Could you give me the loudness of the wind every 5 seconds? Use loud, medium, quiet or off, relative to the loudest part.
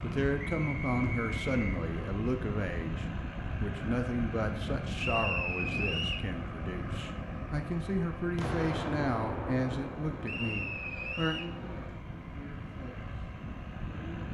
loud, loud, medium.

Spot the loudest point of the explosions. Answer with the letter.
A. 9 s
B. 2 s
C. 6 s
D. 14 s
A.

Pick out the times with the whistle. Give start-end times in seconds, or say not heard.
0.4-1.8, 5.0-6.2, 10.2-11.5.